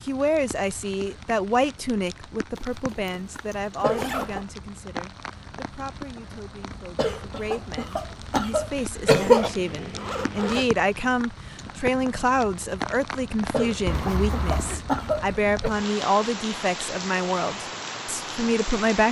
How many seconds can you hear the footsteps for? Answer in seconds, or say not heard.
not heard.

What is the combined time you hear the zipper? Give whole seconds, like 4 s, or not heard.
4 s.